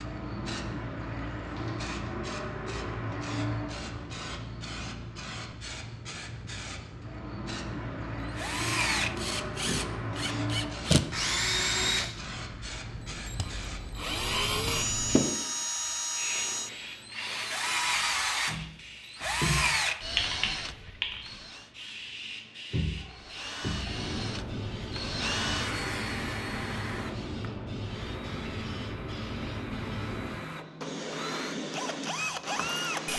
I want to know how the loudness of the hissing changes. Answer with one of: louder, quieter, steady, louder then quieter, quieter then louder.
steady.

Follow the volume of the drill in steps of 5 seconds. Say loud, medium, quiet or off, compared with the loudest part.
off, loud, loud, loud, medium, medium, medium.